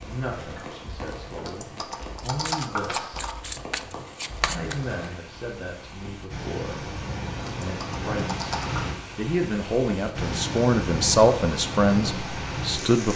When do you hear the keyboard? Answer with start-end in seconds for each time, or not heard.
1.4-3.4, 7.4-8.9.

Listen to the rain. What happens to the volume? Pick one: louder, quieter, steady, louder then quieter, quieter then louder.
louder.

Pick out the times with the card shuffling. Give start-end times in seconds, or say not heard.
2.2-4.8.